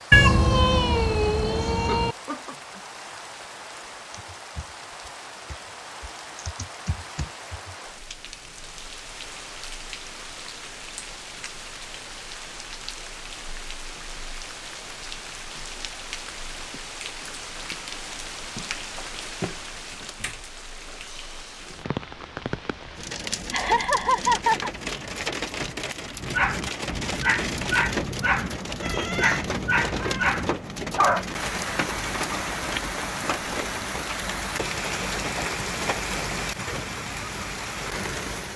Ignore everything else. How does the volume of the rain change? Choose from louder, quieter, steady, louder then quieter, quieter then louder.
louder.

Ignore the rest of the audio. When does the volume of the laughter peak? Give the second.
24 s.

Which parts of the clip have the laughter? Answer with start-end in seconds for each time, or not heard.
1.8-2.5, 23.5-24.7.